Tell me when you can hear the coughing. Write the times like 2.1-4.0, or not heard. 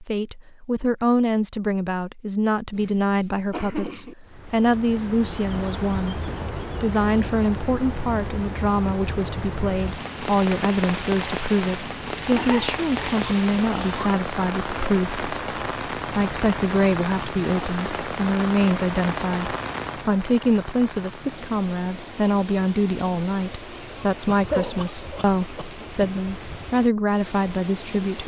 2.7-4.2, 12.2-14.1, 24.3-26.1.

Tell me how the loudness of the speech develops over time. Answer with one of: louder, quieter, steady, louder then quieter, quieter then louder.
steady.